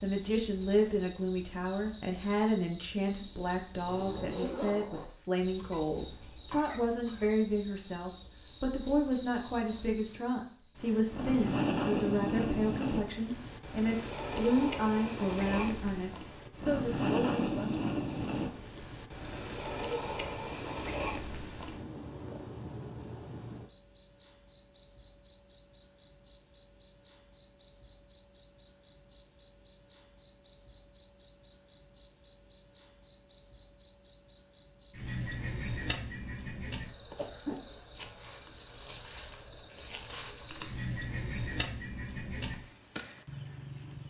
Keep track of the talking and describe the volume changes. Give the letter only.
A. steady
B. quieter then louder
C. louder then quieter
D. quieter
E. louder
A.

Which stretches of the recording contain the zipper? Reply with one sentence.
The zipper can be heard from 3.9 to 5.0 s.